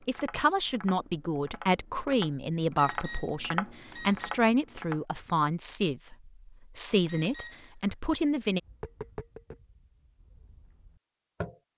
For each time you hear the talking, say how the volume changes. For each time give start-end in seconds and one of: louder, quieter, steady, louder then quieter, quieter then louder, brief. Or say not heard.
0.1-8.6 steady.